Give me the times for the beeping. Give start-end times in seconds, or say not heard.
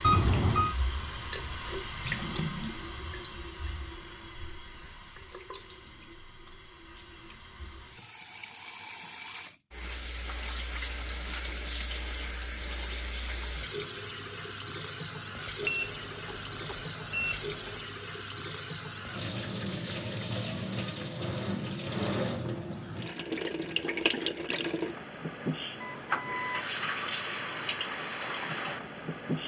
0.0-0.8, 15.6-17.9, 25.8-26.7.